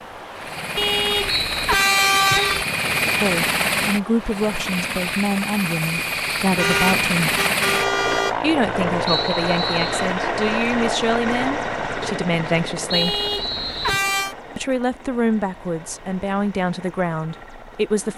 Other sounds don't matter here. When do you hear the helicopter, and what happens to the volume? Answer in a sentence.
The helicopter can be heard from 0.0 to 18.1 s, getting quieter.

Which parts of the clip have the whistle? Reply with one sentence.
The whistle can be heard from 1.2 to 2.5 s, from 9.1 to 10.1 s and from 12.9 to 14.1 s.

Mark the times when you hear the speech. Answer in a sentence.
The speech can be heard from 3.2 to 7.4 s, from 8.4 to 13.2 s and from 14.6 to 18.1 s.